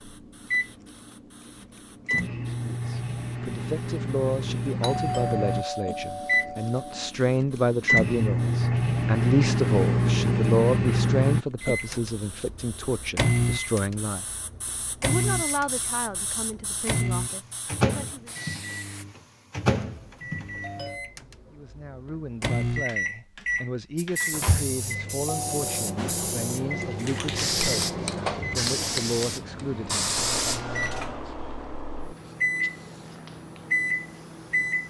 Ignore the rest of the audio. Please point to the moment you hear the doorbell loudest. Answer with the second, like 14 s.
5 s.